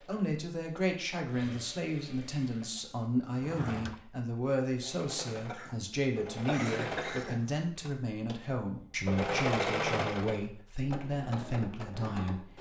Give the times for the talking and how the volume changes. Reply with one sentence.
You can hear the talking from 0.0 to 12.5 s, at a steady volume.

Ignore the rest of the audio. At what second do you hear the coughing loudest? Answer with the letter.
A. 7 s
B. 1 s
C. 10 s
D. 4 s
A.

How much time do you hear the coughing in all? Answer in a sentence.
The coughing can be heard for 2 seconds in total.